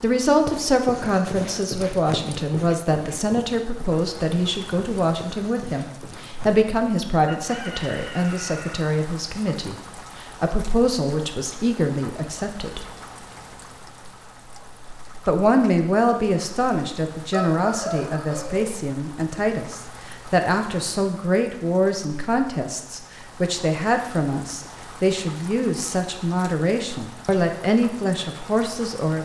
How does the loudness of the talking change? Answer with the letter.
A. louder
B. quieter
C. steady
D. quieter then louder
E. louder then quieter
C.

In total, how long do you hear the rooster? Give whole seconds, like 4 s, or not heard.
3 s.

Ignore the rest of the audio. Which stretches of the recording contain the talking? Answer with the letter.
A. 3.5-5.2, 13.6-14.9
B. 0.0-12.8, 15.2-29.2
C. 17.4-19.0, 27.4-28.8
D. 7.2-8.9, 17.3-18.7
B.